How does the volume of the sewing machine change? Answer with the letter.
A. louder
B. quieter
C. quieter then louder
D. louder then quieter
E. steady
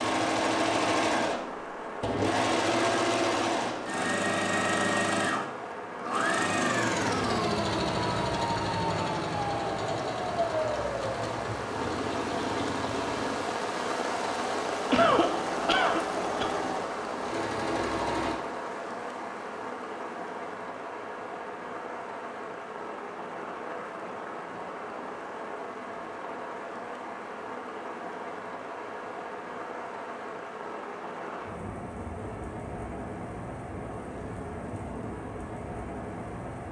B.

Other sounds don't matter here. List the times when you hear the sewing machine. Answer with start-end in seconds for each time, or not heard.
0.0-18.4.